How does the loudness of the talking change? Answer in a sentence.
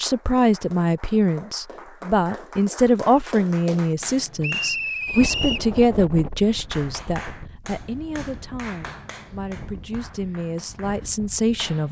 The loudness of the talking goes down.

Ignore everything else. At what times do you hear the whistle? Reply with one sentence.
You can hear the whistle from 4.4 to 5.7 s.